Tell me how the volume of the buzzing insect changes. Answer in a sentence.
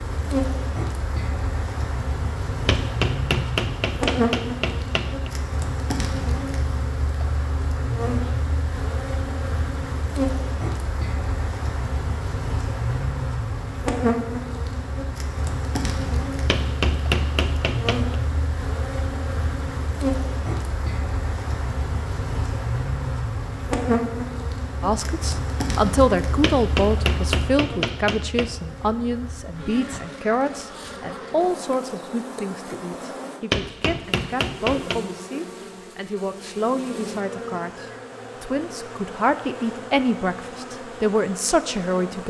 The volume of the buzzing insect goes down.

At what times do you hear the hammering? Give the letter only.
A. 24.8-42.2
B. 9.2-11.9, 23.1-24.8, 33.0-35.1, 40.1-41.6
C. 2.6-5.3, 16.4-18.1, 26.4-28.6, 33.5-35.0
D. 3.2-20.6
C.